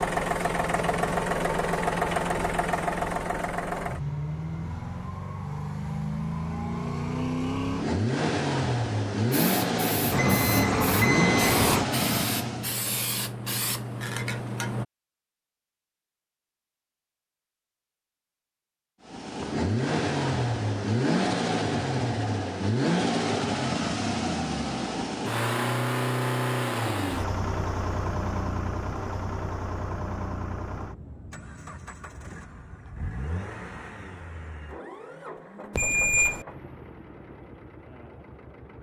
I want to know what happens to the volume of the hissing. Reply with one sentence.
The loudness of the hissing goes up.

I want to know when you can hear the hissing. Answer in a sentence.
You can hear the hissing from 9.3 to 14.8 s.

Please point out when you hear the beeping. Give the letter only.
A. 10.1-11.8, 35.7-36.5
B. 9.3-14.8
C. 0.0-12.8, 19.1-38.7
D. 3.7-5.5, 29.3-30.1
A.